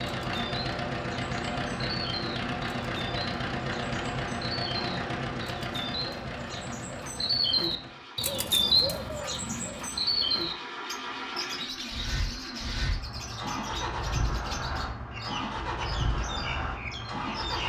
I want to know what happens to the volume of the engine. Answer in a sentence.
The loudness of the engine goes down, then up.